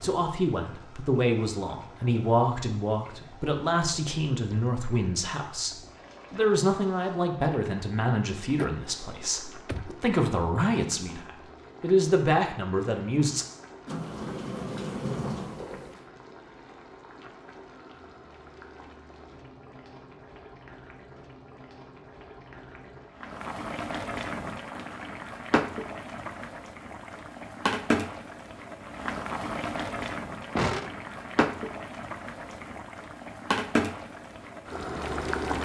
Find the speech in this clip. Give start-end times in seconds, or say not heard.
0.0-13.4.